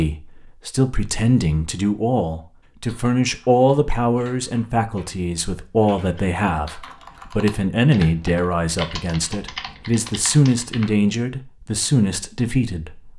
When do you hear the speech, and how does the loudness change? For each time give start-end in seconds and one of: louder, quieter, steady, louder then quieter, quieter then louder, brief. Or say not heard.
0.0-13.1 steady.